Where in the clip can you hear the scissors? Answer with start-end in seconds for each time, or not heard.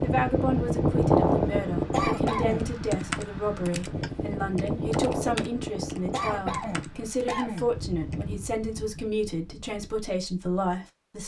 not heard.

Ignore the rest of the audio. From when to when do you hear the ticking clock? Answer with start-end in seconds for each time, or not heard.
not heard.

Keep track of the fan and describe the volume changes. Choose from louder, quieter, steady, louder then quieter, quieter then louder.
quieter.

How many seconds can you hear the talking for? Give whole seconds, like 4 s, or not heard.
11 s.